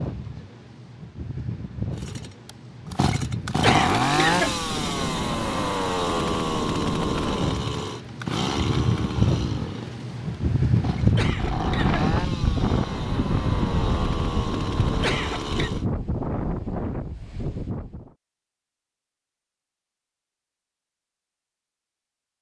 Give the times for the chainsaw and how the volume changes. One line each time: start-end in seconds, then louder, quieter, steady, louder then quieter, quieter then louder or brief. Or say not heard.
1.9-15.8 quieter.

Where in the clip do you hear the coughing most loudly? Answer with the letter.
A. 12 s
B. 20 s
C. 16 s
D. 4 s
D.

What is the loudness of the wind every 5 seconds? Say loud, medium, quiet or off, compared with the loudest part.
medium, loud, loud, medium, off.